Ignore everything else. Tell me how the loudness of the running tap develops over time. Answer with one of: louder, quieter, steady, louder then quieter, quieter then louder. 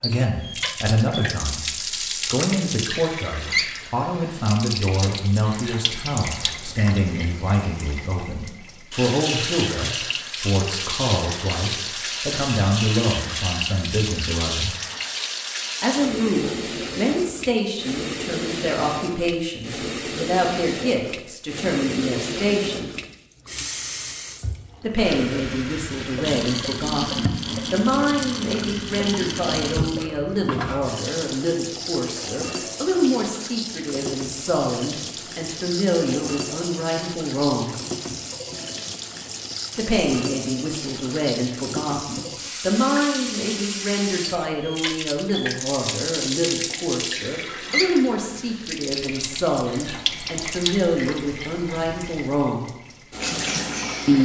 steady.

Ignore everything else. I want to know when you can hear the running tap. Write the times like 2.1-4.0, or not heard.
0.0-54.2.